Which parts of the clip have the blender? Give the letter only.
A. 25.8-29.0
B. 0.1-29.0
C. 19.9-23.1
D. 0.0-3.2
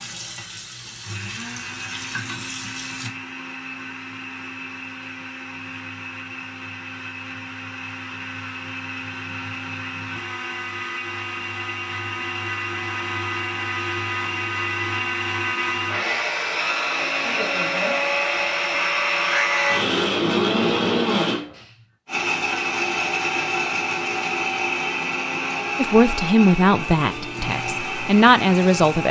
B.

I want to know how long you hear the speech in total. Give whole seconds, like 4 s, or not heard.
3 s.